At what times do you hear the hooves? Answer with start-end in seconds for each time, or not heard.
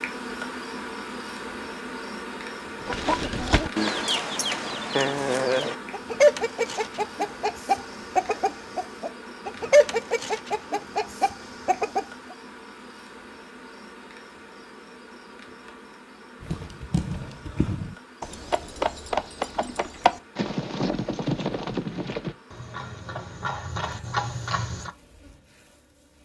16.4-24.9.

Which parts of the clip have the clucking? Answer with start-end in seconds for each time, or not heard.
2.8-12.3.